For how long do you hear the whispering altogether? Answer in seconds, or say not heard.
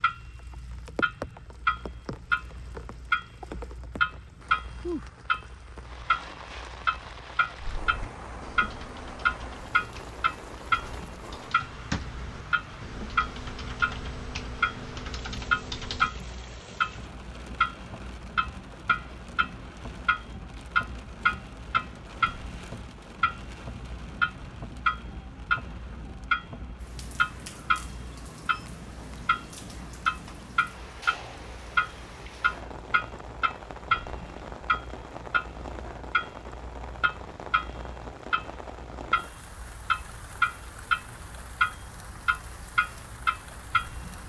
not heard.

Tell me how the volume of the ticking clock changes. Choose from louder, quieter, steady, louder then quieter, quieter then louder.
steady.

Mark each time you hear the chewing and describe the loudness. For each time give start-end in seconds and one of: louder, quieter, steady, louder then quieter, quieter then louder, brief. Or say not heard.
not heard.